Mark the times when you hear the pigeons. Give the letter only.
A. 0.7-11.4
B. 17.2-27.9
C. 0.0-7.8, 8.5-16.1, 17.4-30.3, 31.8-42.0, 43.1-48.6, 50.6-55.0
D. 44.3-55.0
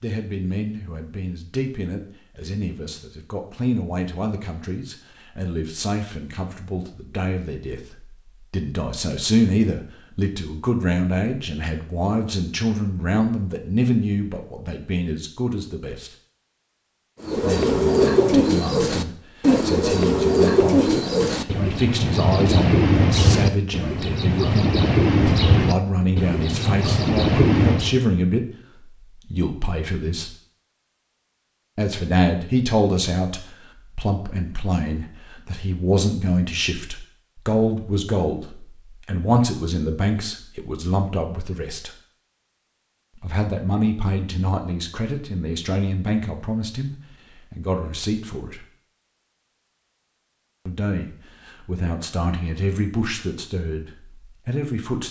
B.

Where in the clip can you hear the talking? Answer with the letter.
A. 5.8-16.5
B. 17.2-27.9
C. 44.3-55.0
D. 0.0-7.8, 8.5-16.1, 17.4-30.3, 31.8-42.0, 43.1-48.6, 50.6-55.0
D.